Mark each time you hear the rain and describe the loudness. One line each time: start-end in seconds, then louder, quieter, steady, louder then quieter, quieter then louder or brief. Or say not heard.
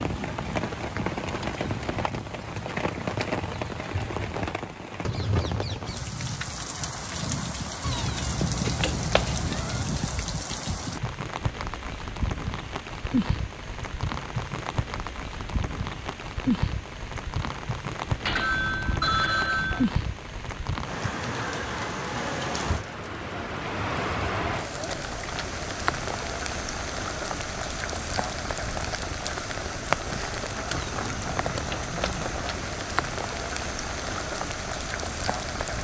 0.0-35.7 steady.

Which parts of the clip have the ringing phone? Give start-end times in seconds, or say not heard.
18.2-19.9.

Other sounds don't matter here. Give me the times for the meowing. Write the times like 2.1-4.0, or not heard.
7.8-9.8, 30.7-32.8.